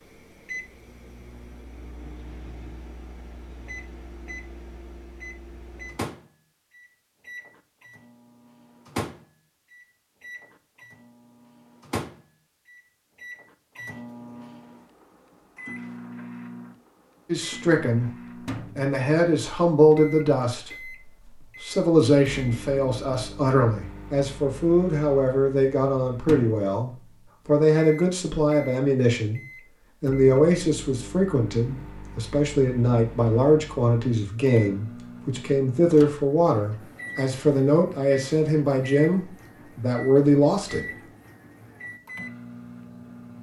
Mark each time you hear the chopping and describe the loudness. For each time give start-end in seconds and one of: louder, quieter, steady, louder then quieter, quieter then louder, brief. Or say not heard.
not heard.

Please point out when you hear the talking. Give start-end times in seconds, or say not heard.
17.2-29.4, 30.0-41.0.